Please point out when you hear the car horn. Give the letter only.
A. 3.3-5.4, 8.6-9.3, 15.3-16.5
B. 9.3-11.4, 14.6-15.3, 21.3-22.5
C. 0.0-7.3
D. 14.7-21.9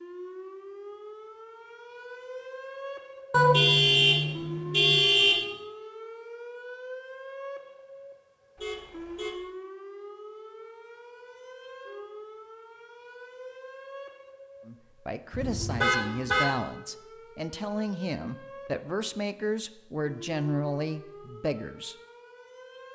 A.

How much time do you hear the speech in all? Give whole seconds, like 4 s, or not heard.
7 s.